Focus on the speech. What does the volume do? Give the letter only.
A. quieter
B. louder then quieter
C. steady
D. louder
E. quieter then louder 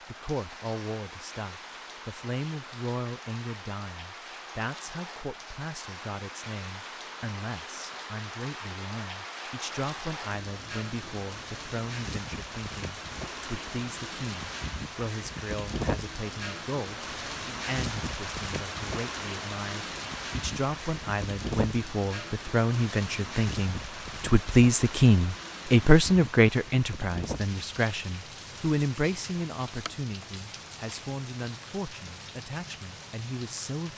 B.